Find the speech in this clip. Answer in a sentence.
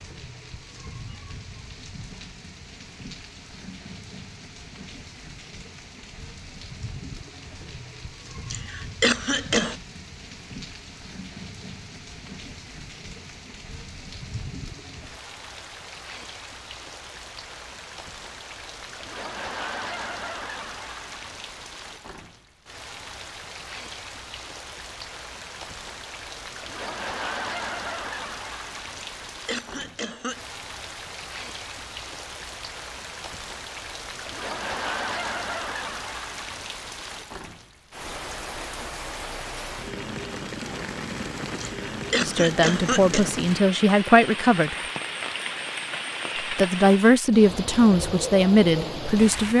You can hear the speech from 42.2 to 44.8 s and from 46.4 to 49.5 s.